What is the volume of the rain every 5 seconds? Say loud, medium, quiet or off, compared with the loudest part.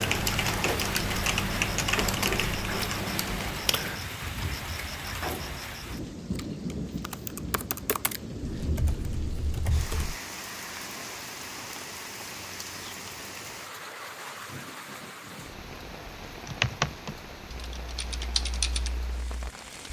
loud, loud, medium, medium.